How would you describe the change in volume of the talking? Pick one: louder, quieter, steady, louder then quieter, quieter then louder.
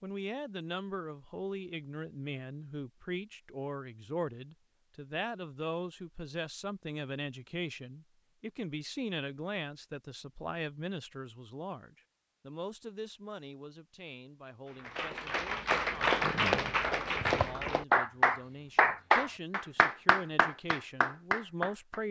quieter then louder.